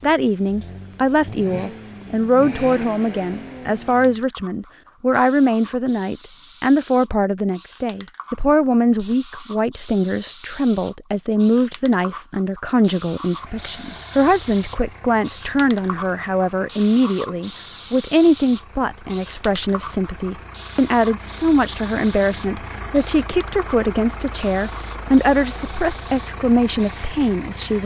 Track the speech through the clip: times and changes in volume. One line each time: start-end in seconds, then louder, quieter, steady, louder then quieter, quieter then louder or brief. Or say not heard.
0.0-27.8 steady.